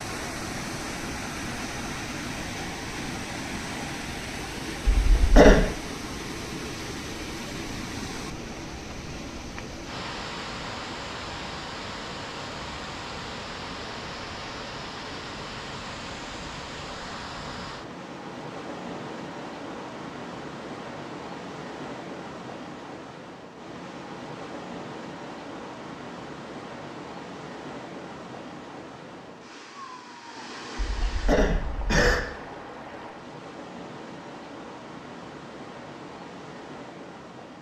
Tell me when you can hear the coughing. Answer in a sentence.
The coughing can be heard from 5.0 to 5.7 s and from 30.8 to 32.2 s.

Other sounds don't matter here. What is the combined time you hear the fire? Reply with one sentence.
The fire can't be heard in this clip.